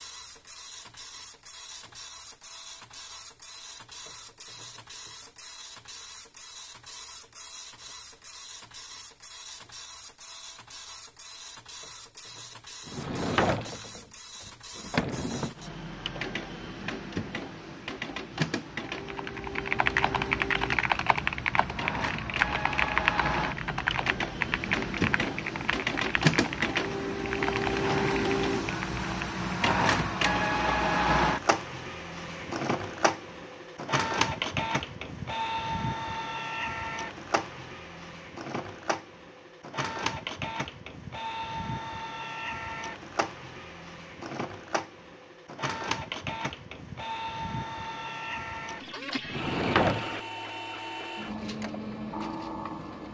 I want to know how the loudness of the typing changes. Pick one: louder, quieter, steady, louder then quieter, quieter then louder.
quieter.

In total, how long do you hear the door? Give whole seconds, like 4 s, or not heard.
4 s.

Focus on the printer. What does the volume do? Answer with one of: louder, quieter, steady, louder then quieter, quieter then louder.
louder then quieter.